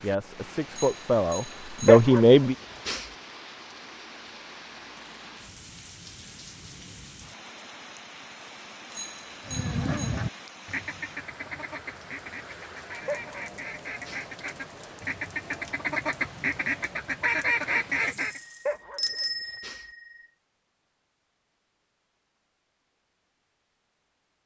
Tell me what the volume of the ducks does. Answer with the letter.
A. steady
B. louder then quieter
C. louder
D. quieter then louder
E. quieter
D.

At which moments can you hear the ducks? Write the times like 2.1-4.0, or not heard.
9.4-18.4.